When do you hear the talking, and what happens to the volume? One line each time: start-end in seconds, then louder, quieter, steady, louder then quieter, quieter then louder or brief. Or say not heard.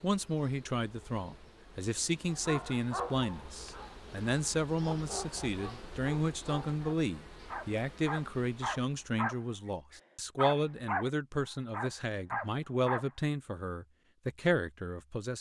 0.0-15.3 steady.